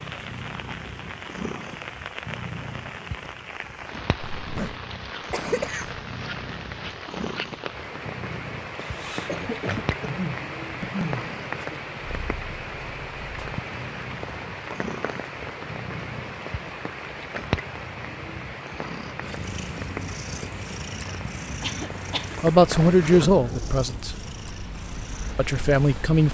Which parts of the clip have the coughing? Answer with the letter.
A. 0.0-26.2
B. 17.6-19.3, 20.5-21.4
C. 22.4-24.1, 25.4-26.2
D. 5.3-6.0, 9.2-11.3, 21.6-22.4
D.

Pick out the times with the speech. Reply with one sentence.
The speech can be heard from 22.4 to 24.1 s and from 25.4 to 26.2 s.